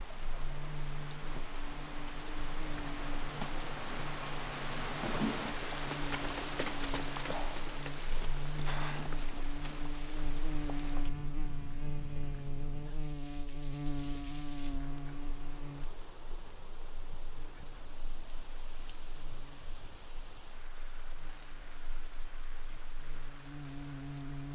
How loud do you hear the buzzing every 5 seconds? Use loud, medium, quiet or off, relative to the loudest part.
medium, loud, loud, medium, medium.